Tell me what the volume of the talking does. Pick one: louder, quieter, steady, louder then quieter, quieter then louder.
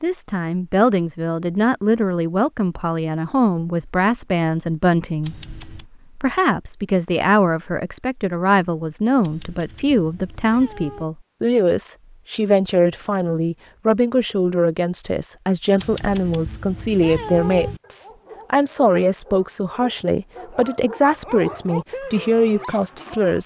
steady.